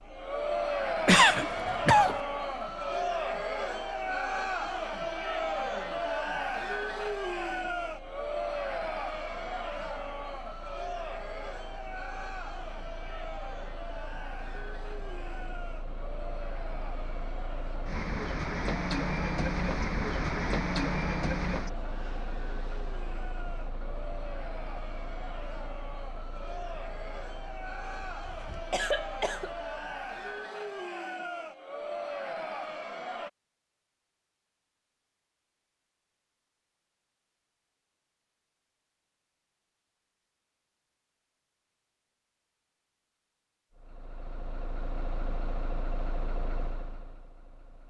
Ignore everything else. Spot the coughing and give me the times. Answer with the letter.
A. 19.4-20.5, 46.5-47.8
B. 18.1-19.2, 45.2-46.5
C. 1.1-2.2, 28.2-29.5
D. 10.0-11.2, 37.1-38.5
C.